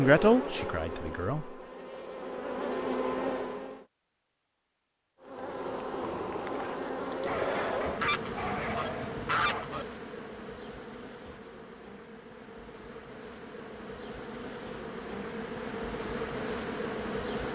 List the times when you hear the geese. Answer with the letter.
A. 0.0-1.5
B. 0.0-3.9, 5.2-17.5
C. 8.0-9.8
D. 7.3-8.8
C.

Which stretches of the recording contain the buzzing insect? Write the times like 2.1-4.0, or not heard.
0.0-3.9, 5.2-17.5.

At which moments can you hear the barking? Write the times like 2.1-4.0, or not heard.
7.2-9.7.